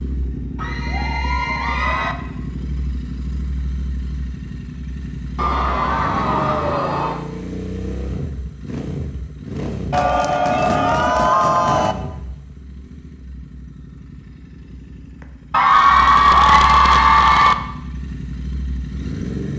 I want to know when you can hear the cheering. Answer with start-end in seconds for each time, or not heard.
0.6-2.1, 5.3-7.2, 9.9-11.9, 15.5-17.6.